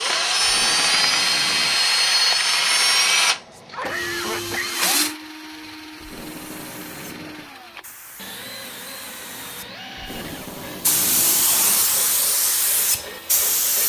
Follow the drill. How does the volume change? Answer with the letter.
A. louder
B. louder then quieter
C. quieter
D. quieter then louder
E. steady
C.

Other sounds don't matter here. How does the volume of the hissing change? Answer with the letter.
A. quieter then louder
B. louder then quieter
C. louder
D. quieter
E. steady
C.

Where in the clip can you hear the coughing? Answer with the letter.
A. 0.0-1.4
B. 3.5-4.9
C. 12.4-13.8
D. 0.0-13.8
B.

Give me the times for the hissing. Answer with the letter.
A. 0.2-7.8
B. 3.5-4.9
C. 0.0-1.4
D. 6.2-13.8
D.